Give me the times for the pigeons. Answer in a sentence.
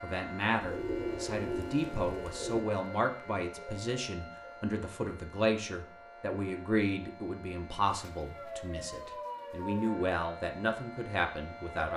You can hear the pigeons from 0.6 to 2.6 s and from 8.1 to 9.9 s.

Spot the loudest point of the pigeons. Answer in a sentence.
The volume of the pigeons peaks at 1 second.